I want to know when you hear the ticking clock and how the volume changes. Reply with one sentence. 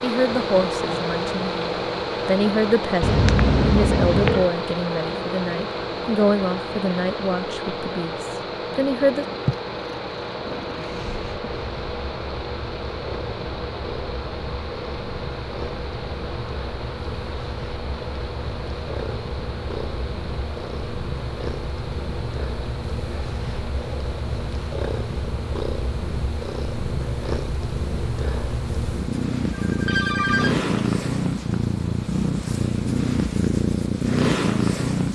The ticking clock can't be heard in this clip.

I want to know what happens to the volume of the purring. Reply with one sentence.
The loudness of the purring goes up.